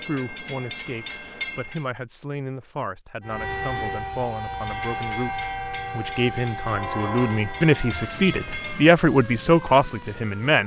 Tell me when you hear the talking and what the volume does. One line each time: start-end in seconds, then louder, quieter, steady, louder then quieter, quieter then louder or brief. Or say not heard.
0.1-10.6 louder.